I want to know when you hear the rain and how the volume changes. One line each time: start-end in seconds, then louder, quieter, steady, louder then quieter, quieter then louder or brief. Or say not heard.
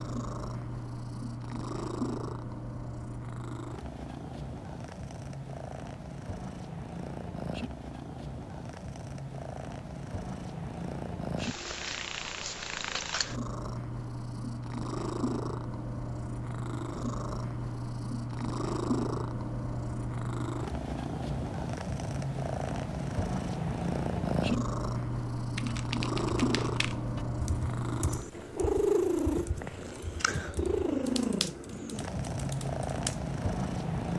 not heard.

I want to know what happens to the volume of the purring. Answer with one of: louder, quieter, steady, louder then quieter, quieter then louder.
louder.